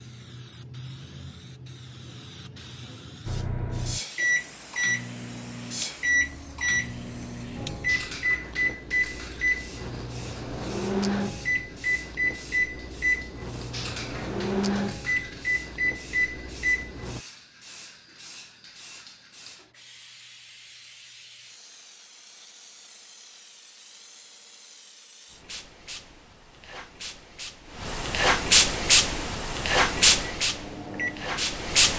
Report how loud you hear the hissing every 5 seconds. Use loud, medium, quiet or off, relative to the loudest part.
quiet, quiet, quiet, quiet, quiet, loud, loud.